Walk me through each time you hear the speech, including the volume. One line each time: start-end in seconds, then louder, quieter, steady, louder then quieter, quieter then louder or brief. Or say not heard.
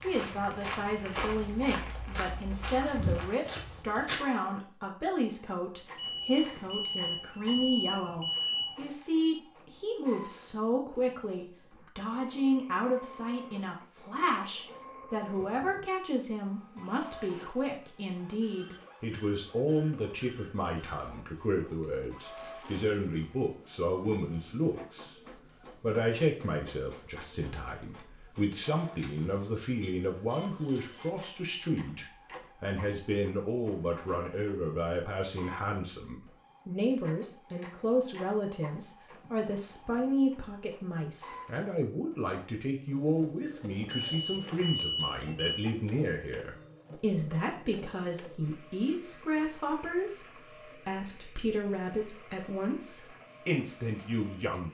0.0-54.6 steady.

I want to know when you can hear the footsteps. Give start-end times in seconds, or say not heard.
0.0-4.2.